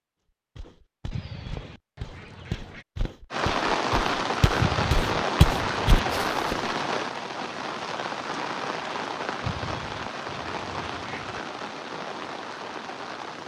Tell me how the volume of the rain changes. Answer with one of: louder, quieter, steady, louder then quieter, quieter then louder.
quieter.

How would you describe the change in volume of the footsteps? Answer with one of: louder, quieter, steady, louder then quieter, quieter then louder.
louder.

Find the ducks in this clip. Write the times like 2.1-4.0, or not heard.
1.1-2.9, 4.5-6.2, 9.4-11.4.